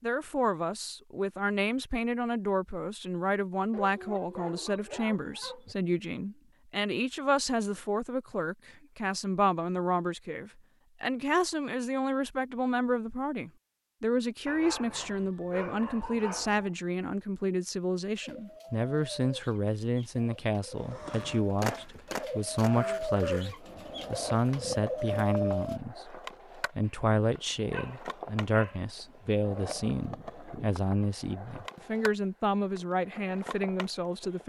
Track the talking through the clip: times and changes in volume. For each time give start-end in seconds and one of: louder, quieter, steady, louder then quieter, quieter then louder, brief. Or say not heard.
0.0-34.4 steady.